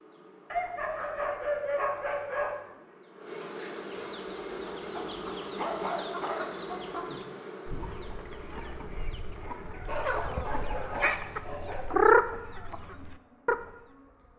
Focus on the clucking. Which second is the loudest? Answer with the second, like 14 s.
12 s.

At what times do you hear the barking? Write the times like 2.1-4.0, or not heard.
0.5-2.5, 5.0-6.5, 9.8-11.8.